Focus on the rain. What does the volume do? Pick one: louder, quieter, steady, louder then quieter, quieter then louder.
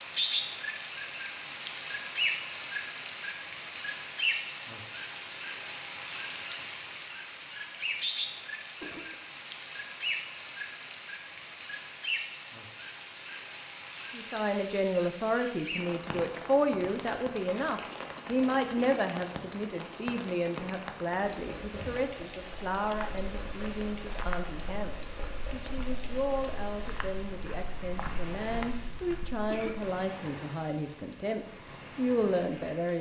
quieter.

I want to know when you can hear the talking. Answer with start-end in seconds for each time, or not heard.
14.1-32.9.